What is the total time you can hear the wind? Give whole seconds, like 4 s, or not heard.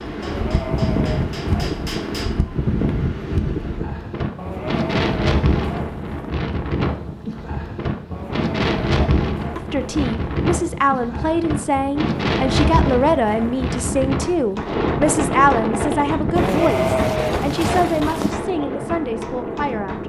20 s.